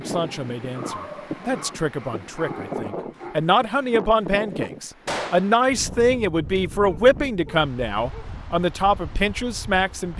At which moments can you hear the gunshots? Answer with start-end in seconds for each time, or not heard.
5.0-5.5.